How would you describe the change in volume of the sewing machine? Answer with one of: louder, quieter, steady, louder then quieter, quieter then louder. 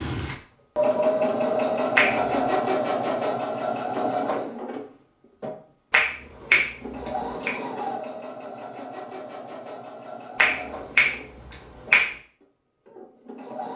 quieter.